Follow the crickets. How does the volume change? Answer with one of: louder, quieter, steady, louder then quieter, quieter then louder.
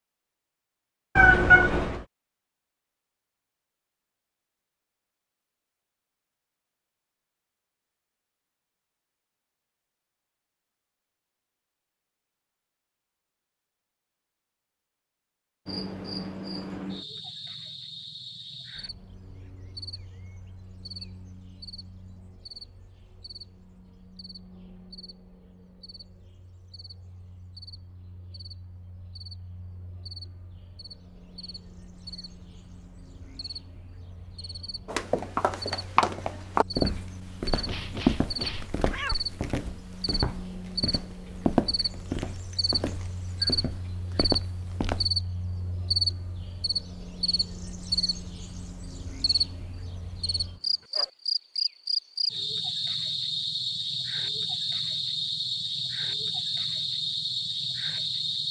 quieter then louder.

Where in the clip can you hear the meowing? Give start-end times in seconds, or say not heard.
1.1-2.0, 37.6-39.2.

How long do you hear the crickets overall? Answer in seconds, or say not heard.
43 s.